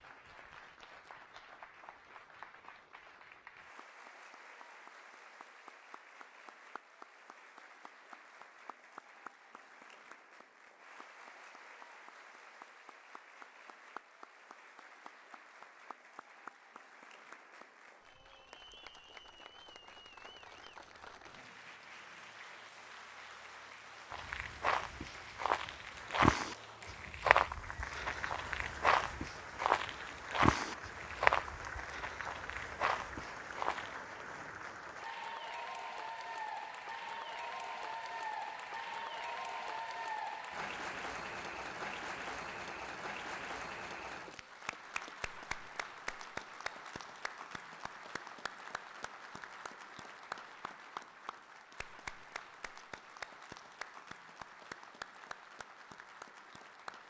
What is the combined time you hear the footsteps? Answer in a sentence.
The footsteps can be heard for 10 seconds in total.